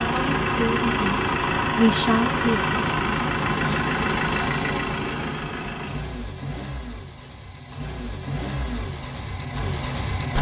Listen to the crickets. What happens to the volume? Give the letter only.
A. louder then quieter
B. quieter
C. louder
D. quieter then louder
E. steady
A.